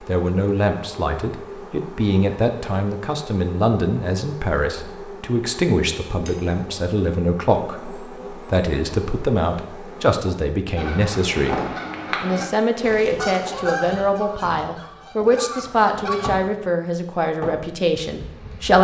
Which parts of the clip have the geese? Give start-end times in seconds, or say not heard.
10.8-16.3.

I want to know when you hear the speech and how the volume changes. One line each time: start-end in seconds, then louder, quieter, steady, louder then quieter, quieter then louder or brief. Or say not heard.
0.0-18.7 steady.